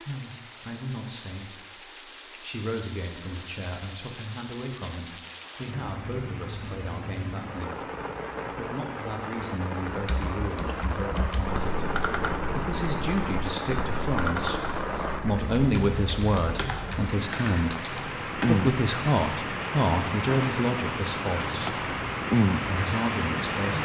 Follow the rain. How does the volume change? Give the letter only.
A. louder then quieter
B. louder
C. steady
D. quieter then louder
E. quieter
B.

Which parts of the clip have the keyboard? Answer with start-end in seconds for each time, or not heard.
9.8-18.6.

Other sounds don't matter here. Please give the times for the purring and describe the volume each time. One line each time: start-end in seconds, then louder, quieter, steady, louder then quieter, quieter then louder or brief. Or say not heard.
not heard.